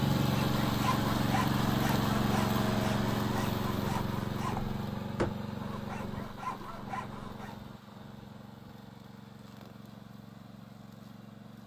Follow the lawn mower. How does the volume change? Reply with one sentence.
The volume of the lawn mower goes down.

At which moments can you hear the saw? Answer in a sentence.
You can hear the saw from 0.3 to 7.5 s.